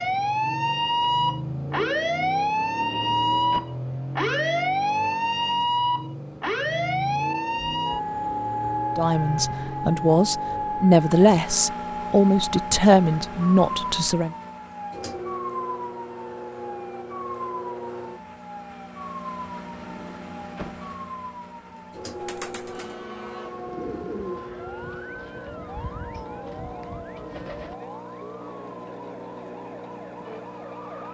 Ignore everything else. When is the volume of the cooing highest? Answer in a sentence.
The loudest moment of the cooing is at 24 seconds.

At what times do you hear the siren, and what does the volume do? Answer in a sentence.
The siren can be heard from 0.0 to 31.0 s, getting quieter.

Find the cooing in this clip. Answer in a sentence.
You can hear the cooing from 21.6 to 27.8 s.